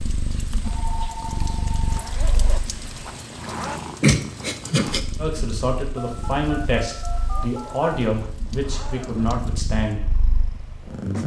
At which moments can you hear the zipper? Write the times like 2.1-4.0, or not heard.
1.9-3.8, 7.1-9.3.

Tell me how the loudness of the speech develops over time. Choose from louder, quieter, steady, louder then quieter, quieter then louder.
steady.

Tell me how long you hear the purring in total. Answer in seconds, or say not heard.
11 s.